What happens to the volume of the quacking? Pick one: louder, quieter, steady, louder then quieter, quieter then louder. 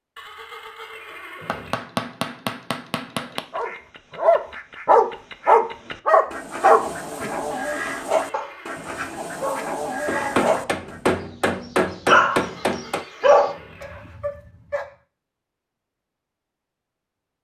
louder.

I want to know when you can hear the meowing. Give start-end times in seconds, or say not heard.
not heard.